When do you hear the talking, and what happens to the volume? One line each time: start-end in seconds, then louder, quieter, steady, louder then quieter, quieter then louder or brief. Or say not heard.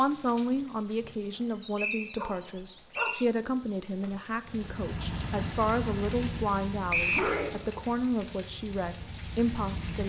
0.0-10.0 steady.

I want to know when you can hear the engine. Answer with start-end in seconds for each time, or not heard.
4.5-10.0.